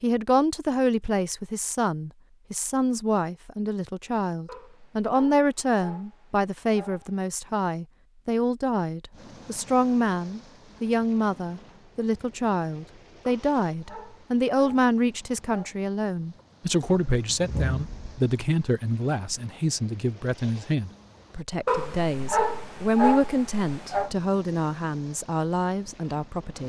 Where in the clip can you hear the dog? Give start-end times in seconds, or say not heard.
4.5-7.2, 13.2-15.8, 21.6-24.1.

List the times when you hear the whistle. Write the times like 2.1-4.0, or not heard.
not heard.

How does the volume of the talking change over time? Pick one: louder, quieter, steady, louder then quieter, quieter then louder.
steady.